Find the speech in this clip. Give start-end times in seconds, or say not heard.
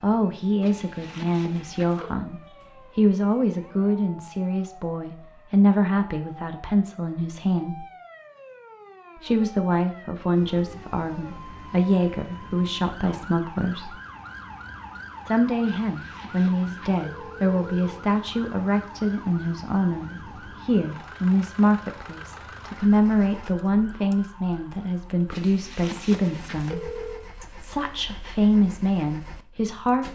0.0-7.8, 9.2-13.9, 15.2-30.0.